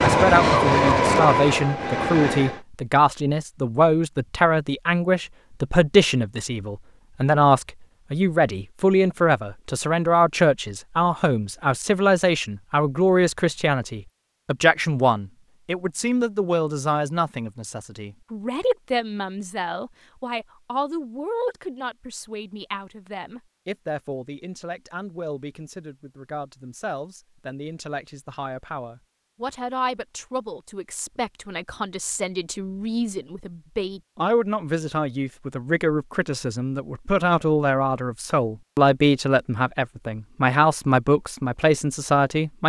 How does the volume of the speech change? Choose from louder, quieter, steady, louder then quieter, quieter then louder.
quieter then louder.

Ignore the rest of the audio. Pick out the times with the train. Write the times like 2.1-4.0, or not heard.
0.0-2.6.